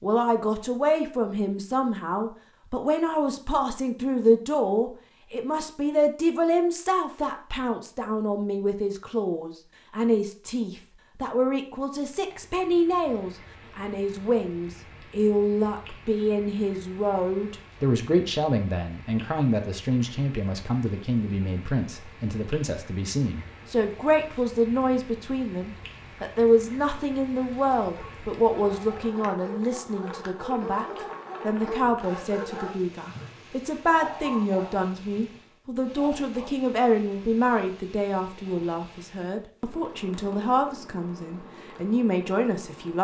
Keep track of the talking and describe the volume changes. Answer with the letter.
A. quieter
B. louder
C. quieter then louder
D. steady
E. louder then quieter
D.